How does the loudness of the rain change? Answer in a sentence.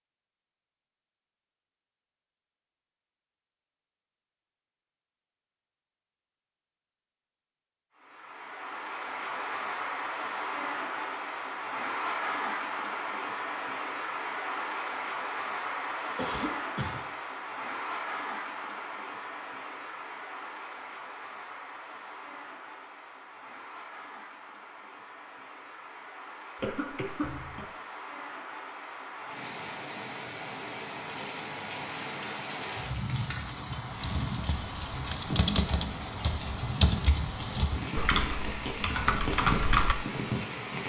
The loudness of the rain goes down, then up.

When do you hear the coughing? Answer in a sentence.
You can hear the coughing from 16.1 to 17.0 s and from 26.6 to 27.6 s.